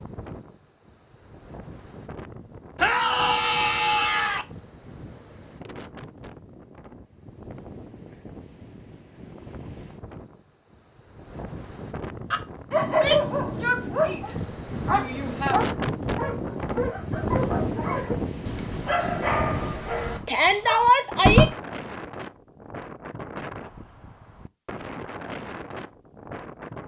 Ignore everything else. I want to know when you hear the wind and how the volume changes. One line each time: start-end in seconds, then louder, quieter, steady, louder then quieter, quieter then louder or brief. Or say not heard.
0.0-26.8 louder then quieter.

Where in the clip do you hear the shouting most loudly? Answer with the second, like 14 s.
21 s.